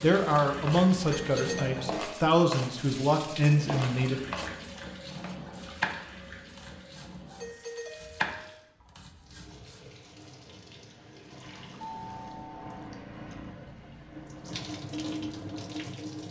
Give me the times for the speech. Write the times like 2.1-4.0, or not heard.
0.0-4.2.